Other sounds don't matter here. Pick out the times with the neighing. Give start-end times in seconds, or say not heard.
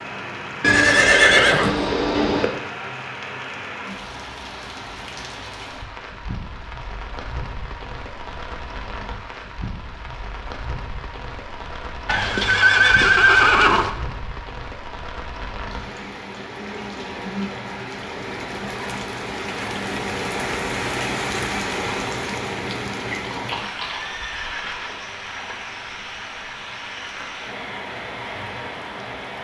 0.6-2.5, 12.1-13.9, 23.2-24.9.